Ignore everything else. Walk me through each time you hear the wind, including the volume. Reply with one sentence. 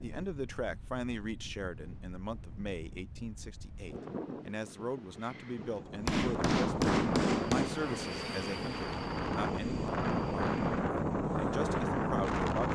The wind can be heard from 0.0 to 12.7 s, getting louder.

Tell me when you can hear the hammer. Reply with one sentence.
You can hear the hammer from 6.0 to 7.7 s.